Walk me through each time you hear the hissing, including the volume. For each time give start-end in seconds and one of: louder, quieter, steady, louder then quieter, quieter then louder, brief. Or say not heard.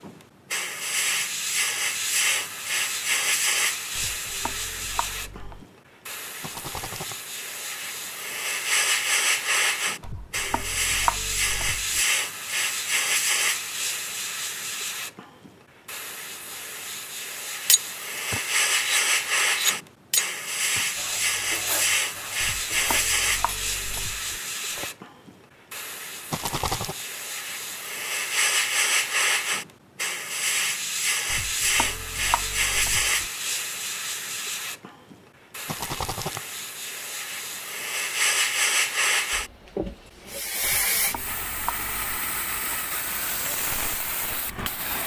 0.0-45.0 steady.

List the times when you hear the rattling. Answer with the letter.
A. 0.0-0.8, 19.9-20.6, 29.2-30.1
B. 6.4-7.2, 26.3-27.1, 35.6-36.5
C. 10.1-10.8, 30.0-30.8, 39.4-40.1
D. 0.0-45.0
B.